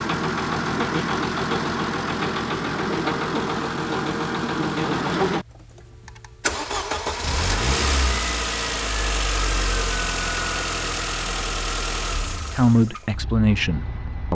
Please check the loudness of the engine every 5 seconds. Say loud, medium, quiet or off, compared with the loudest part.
loud, loud, medium.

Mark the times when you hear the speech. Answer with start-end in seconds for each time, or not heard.
12.6-14.2.